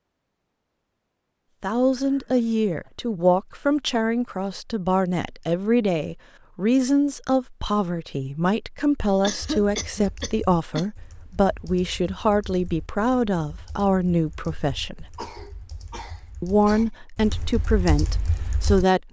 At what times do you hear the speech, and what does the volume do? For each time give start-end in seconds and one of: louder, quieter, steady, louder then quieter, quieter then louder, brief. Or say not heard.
1.6-15.1 steady
16.4-19.0 brief.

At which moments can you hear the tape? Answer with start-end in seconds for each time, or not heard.
not heard.